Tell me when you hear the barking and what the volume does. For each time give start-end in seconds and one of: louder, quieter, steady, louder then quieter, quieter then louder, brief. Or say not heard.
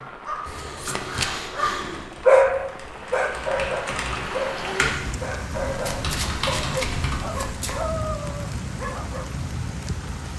0.0-9.3 louder then quieter.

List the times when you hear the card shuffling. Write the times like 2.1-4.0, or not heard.
0.5-1.4, 5.8-7.8.